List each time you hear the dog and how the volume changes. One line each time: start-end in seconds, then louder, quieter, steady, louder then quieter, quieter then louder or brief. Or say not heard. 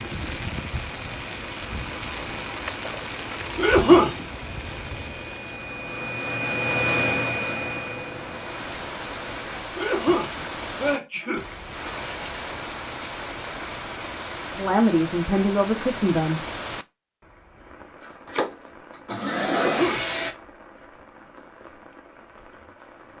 not heard.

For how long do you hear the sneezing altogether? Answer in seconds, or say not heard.
3 s.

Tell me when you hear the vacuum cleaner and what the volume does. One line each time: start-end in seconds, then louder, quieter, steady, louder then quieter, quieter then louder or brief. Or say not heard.
0.0-9.4 louder then quieter
18.0-20.4 brief.